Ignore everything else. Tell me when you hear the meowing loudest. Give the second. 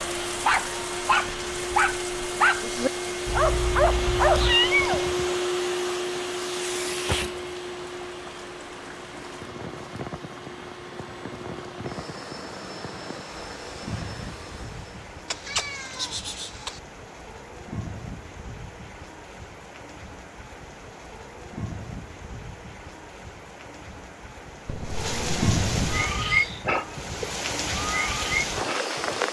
5 s.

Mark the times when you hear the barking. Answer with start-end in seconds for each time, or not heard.
0.2-4.5, 25.9-29.2.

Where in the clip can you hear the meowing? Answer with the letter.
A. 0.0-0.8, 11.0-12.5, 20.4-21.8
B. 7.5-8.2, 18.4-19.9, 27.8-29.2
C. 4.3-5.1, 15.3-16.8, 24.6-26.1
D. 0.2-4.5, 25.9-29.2
C.